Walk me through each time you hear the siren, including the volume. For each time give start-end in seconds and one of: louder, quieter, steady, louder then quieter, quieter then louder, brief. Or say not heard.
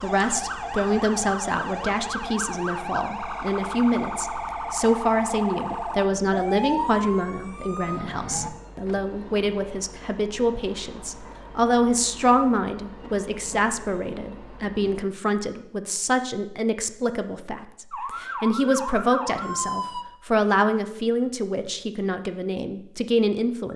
0.0-8.5 steady
17.9-20.1 brief.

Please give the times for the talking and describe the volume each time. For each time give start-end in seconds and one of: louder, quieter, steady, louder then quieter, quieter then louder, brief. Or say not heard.
0.0-23.7 steady.